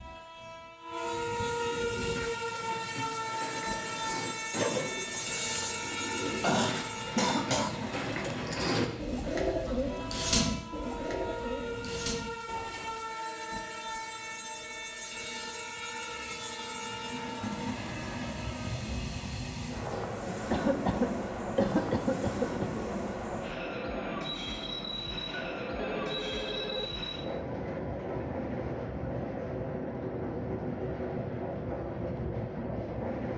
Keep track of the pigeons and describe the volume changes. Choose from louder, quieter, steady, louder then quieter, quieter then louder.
louder then quieter.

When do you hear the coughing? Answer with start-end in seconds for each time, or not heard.
5.2-7.9, 20.5-22.8.